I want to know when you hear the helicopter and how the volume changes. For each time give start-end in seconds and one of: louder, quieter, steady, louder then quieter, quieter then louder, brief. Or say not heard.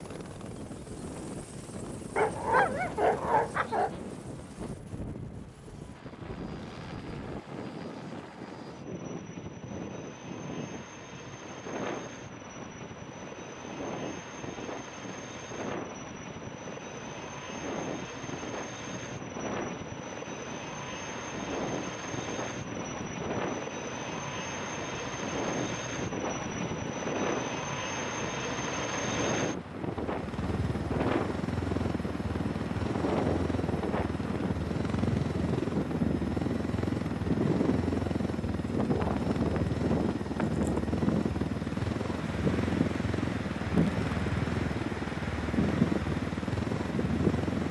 0.0-47.6 louder.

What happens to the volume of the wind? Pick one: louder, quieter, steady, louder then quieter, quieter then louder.
louder.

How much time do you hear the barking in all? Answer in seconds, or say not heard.
2 s.